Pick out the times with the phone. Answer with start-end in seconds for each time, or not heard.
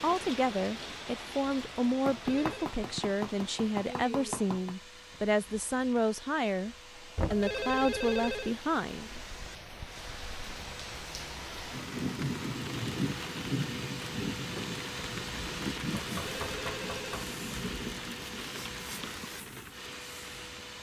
2.1-2.8, 7.3-8.6, 16.2-17.1.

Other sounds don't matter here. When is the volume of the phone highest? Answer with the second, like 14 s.
8 s.